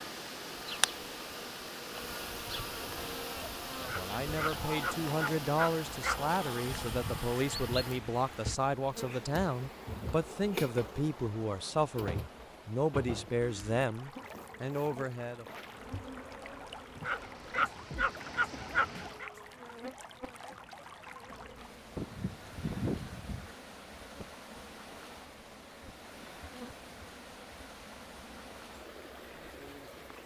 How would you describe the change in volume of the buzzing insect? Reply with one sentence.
The loudness of the buzzing insect goes down.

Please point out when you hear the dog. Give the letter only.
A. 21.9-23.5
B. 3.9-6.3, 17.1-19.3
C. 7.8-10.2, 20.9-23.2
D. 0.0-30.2
B.